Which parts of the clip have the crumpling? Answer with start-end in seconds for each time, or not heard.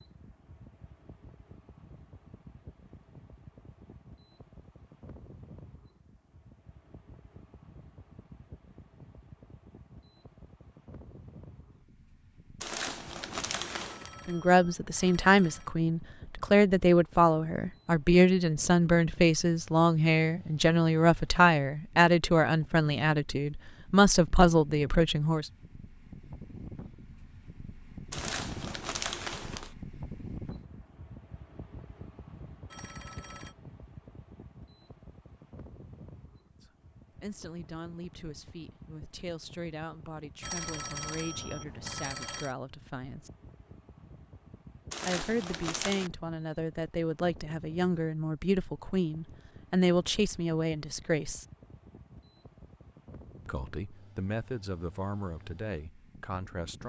12.6-14.1, 28.1-29.8, 44.9-46.1.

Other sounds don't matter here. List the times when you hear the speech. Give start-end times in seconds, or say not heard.
14.2-25.5, 36.6-43.3, 45.0-51.5, 53.5-56.8.